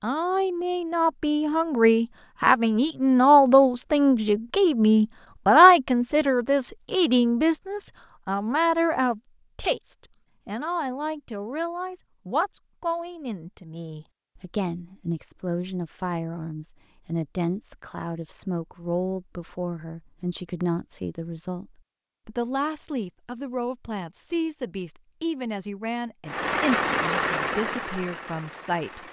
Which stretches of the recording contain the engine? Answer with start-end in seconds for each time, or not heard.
26.2-29.0.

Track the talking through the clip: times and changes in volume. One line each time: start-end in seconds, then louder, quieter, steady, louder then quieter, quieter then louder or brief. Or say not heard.
0.0-29.0 quieter.